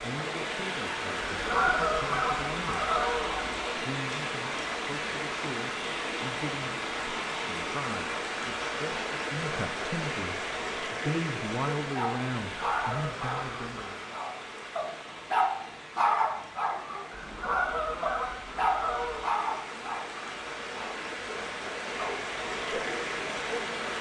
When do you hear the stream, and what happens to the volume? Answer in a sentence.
You can hear the stream from 0.0 to 23.9 s, getting quieter then louder.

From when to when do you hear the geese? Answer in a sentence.
The geese can be heard from 1.3 to 3.8 s, from 12.4 to 13.9 s and from 17.1 to 19.3 s.